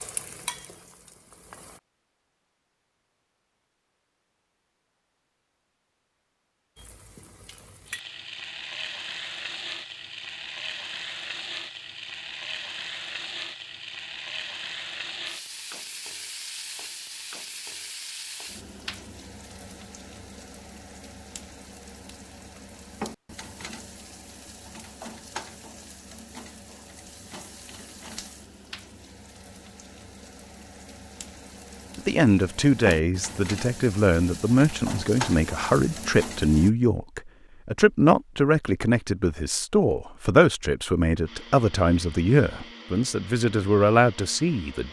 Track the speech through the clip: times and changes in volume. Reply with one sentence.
You can hear the speech from 31.9 to 44.8 s, at a steady volume.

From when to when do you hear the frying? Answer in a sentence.
You can hear the frying from 0.0 to 1.8 s and from 6.8 to 36.7 s.